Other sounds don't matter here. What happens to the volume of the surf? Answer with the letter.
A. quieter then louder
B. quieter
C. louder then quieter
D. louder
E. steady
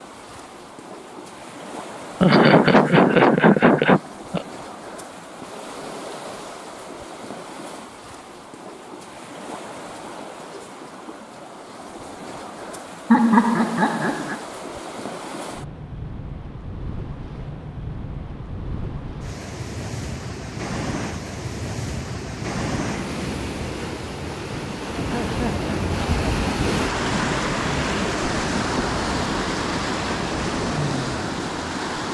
D.